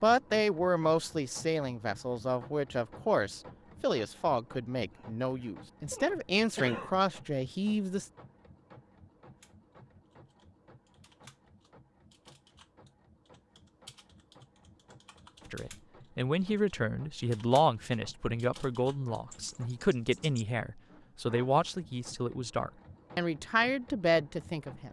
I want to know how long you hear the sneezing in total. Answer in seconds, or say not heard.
2 s.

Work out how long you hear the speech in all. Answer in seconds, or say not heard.
17 s.